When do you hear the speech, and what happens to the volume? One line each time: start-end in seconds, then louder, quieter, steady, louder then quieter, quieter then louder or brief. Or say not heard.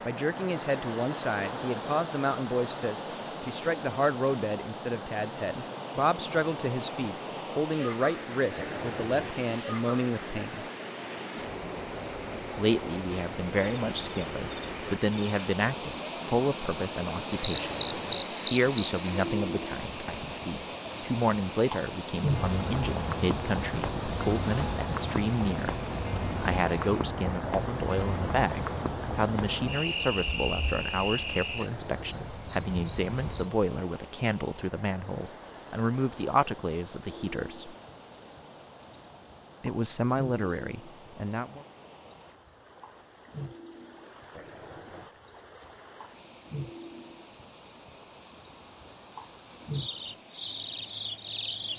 0.1-10.7 steady
12.6-37.8 steady
39.6-41.6 brief.